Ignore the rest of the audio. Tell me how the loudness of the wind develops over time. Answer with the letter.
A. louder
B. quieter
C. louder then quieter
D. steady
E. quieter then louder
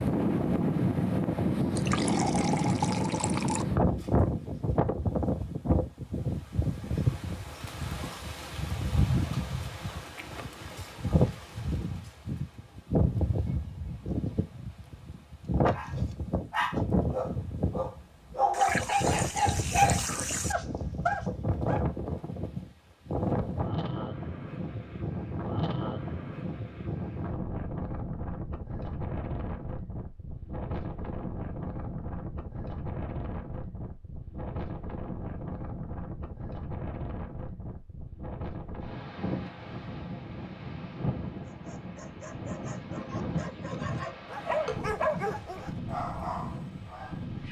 B.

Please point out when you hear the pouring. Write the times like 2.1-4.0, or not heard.
1.8-3.6, 18.5-20.6, 44.6-45.6.